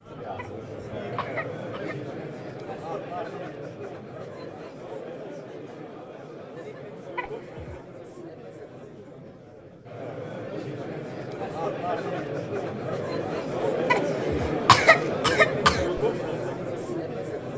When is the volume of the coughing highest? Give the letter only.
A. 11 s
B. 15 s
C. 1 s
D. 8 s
B.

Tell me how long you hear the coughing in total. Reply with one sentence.
You can hear the coughing for 4 seconds altogether.